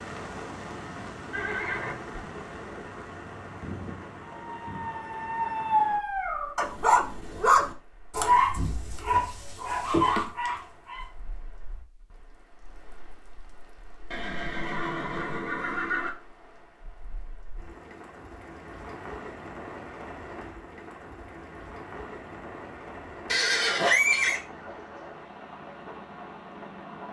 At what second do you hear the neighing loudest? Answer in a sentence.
The volume of the neighing peaks at 24 seconds.